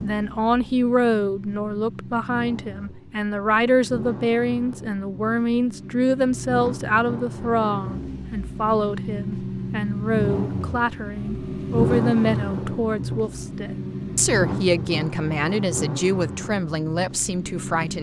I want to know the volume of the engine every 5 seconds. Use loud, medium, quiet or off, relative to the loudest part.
medium, medium, loud, medium.